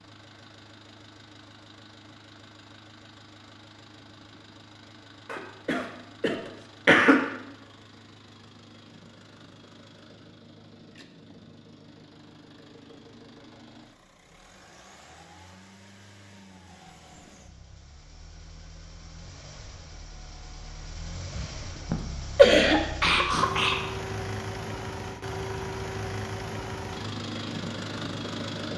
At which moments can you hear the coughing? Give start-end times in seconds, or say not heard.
5.2-7.2, 21.4-23.8.